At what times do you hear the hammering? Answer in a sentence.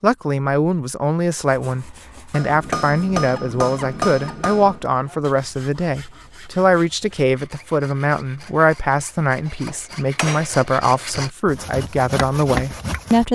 The hammering can be heard from 2.3 to 4.9 s and from 9.4 to 10.6 s.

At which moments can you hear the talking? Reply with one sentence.
You can hear the talking from 0.0 to 13.3 s.